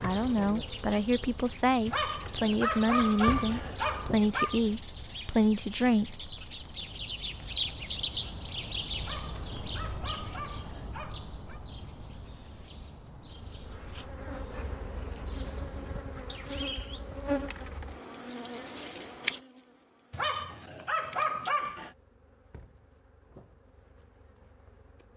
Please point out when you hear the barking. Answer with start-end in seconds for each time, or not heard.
1.9-4.6, 9.0-11.6, 20.1-21.9.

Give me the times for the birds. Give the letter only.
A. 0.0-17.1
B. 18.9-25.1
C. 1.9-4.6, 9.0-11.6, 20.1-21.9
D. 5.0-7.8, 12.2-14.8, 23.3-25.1
A.